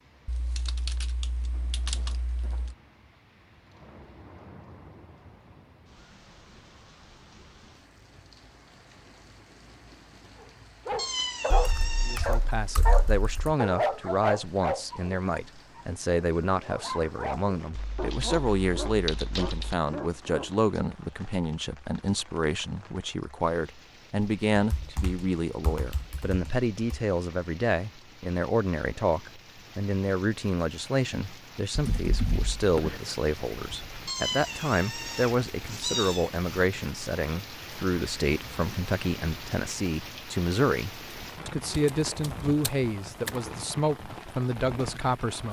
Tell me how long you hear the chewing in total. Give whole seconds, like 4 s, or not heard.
not heard.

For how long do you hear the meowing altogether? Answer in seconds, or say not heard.
4 s.